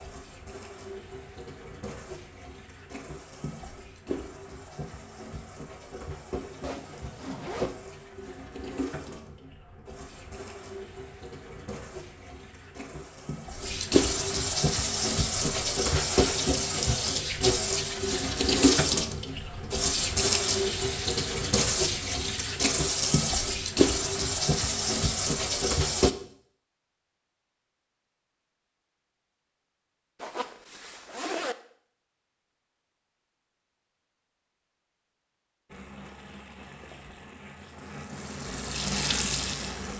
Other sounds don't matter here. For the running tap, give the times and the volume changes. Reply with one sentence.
You can hear the running tap from 0.0 to 26.1 s, getting louder; and from 35.6 to 39.9 s, getting louder.